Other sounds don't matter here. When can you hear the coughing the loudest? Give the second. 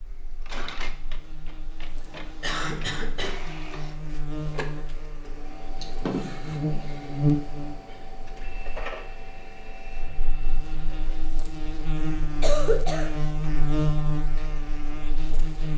13 s.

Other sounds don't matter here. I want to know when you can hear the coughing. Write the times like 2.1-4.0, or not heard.
2.4-3.4, 5.8-6.6, 12.4-13.1.